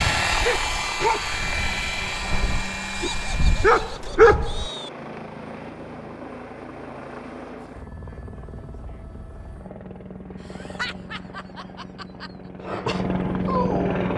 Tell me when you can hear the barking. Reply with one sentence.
You can hear the barking from 0.2 to 4.7 s and from 12.7 to 14.1 s.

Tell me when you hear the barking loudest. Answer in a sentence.
The volume of the barking peaks at 4 seconds.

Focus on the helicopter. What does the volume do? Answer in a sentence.
The volume of the helicopter goes down, then up.